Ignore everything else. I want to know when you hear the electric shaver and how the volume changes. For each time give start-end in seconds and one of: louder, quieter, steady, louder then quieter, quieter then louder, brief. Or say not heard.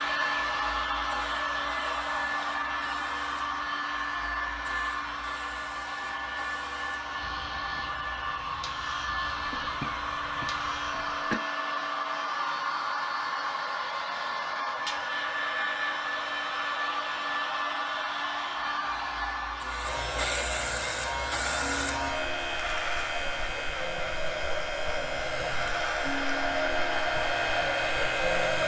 0.0-28.6 louder.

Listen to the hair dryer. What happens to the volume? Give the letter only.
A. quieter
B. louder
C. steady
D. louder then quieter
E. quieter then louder
C.